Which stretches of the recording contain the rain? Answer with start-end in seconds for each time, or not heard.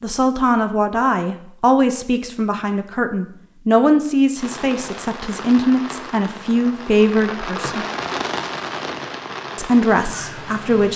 4.3-10.9.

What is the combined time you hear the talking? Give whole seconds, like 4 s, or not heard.
9 s.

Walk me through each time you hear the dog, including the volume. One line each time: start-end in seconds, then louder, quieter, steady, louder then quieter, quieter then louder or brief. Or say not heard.
not heard.